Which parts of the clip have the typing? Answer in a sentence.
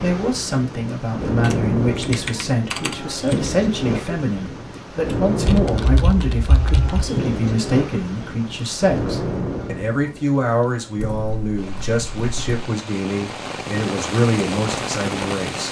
The typing can be heard from 1.4 to 3.5 s, from 5.5 to 7.1 s and from 10.9 to 12.6 s.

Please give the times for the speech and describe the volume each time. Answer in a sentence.
The speech can be heard from 0.0 to 15.6 s, at a steady volume.